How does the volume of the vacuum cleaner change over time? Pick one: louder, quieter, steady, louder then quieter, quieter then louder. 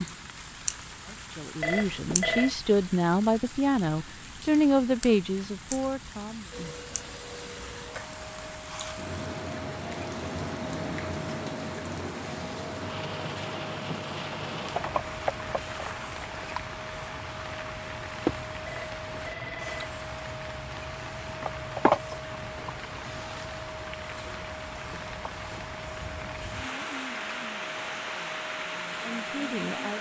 steady.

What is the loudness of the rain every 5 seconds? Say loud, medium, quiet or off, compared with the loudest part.
medium, medium, loud, loud, loud, loud.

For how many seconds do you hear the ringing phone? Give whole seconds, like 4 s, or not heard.
2 s.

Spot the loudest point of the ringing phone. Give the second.
2 s.